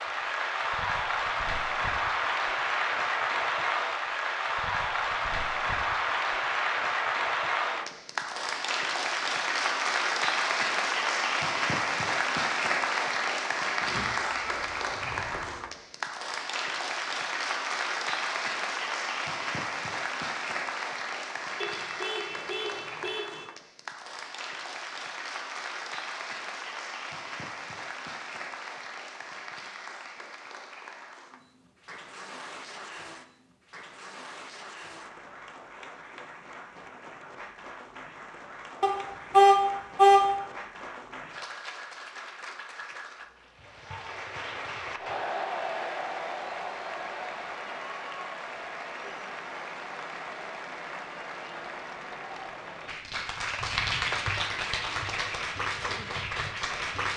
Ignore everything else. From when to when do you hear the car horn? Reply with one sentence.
The car horn can be heard from 13.8 to 15.6 s, from 21.6 to 23.4 s and from 38.8 to 40.2 s.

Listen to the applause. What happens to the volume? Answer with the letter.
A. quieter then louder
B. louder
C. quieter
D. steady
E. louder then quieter
A.